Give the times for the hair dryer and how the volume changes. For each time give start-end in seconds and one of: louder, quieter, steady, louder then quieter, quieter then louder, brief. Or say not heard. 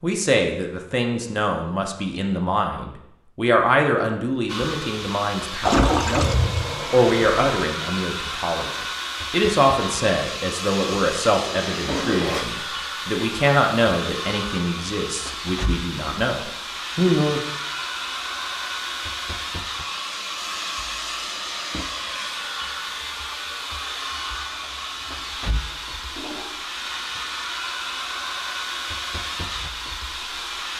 4.5-30.7 steady.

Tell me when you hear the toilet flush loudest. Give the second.
6 s.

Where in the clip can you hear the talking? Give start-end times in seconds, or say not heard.
0.0-17.4.